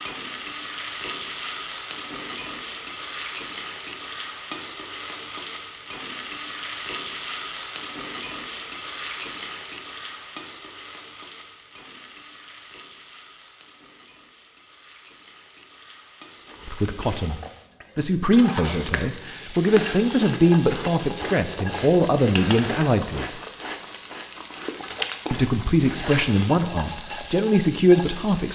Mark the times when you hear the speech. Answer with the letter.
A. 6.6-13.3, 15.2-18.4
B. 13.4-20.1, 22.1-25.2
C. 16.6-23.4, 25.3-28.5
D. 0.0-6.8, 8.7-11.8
C.